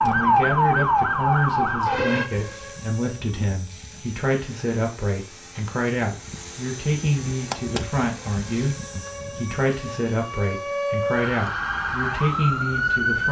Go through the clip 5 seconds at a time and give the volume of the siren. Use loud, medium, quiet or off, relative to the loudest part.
loud, quiet, loud.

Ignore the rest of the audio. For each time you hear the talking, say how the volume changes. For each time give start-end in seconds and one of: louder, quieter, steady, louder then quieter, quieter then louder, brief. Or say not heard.
0.0-13.2 steady.